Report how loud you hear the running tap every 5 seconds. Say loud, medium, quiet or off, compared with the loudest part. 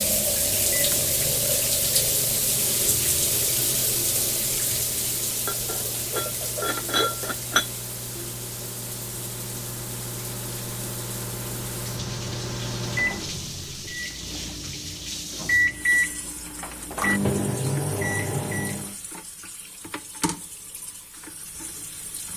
loud, medium, medium, quiet, quiet.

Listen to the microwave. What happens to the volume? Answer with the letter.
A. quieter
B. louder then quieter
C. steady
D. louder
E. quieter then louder
D.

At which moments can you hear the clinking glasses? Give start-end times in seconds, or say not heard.
5.5-7.7.